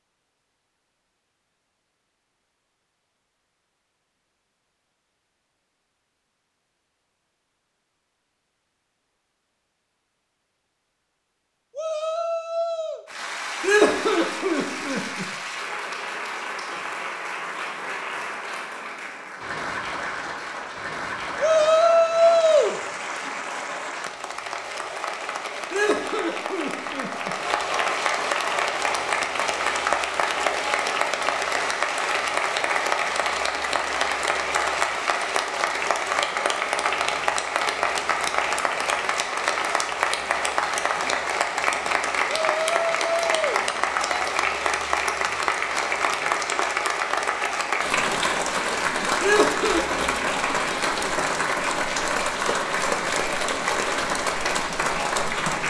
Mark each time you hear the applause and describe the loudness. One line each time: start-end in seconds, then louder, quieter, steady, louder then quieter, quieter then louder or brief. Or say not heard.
13.1-55.6 louder.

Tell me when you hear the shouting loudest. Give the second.
22 s.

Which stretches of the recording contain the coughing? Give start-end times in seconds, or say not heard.
13.6-15.2, 25.7-27.4, 49.2-49.9.